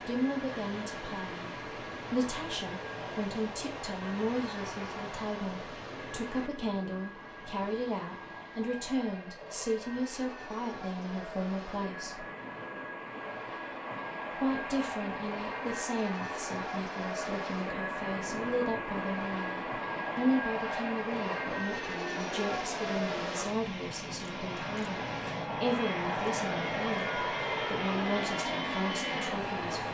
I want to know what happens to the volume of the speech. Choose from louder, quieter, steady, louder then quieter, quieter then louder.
steady.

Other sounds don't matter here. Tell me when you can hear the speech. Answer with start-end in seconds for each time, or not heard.
0.1-12.2, 14.3-29.8.